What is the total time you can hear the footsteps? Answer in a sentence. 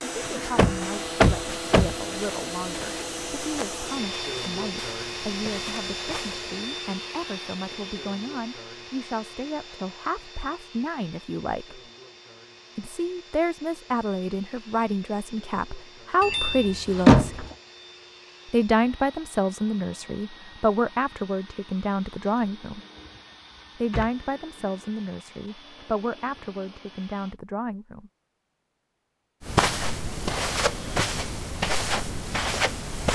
The footsteps can be heard for 10 seconds in total.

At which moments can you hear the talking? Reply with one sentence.
You can hear the talking from 0.0 to 11.8 s, from 12.8 to 17.2 s, from 18.5 to 22.8 s and from 23.8 to 28.1 s.